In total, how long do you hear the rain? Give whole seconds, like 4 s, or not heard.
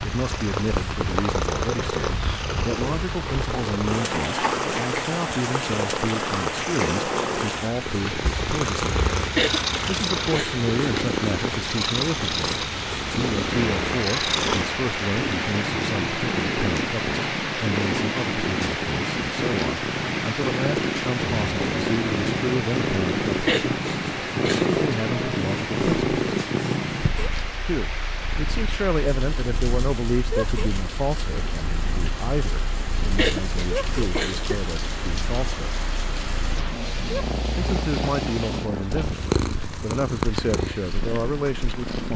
42 s.